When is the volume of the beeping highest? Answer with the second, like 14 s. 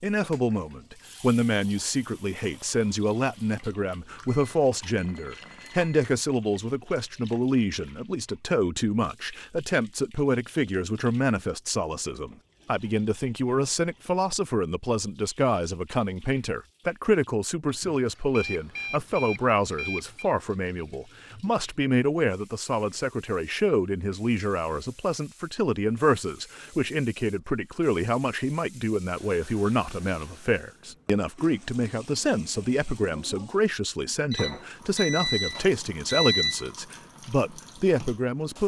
36 s.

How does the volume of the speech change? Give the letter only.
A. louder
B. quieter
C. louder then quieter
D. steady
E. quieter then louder
D.